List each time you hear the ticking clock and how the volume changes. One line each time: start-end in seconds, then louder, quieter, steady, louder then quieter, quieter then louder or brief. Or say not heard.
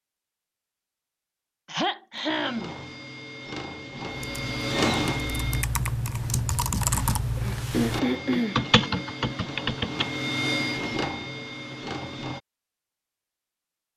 not heard.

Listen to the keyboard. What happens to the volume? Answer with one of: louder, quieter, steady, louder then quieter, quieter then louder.
louder.